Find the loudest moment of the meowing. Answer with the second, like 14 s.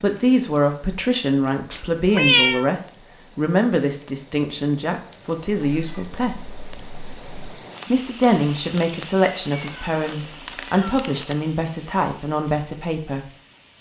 2 s.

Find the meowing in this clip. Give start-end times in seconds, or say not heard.
1.7-2.6, 5.5-7.2, 9.6-11.3.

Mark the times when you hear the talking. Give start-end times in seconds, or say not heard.
0.0-6.3, 7.8-13.2.